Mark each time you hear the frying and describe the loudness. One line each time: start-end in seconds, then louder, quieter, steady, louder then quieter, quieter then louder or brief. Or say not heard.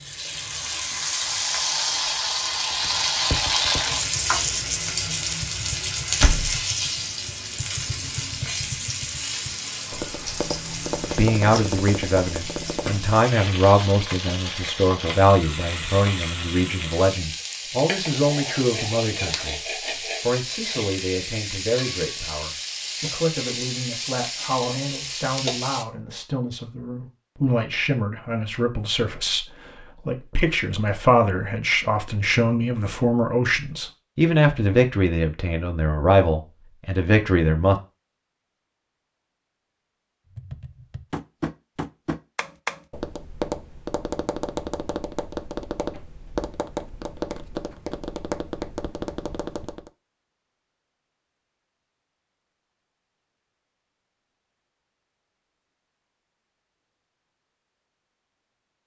0.0-25.9 quieter.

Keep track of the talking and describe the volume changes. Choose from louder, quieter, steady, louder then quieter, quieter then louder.
quieter then louder.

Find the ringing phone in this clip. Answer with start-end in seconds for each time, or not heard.
not heard.